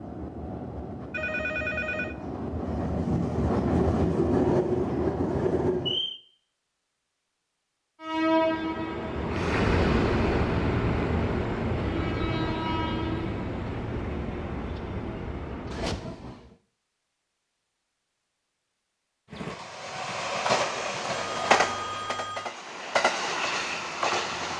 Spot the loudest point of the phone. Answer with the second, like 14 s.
2 s.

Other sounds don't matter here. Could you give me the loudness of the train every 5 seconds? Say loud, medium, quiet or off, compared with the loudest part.
loud, loud, loud, medium, loud.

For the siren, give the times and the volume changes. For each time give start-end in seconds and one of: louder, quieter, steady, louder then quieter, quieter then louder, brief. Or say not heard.
not heard.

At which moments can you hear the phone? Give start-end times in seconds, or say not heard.
1.1-2.1, 21.1-22.5.